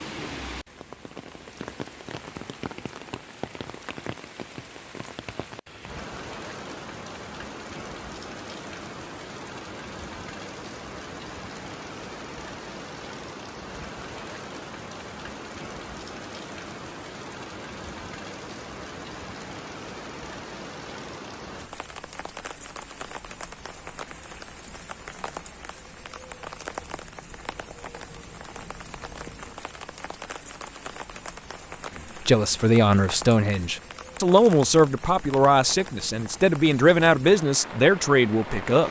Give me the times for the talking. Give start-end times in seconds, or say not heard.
32.2-38.8.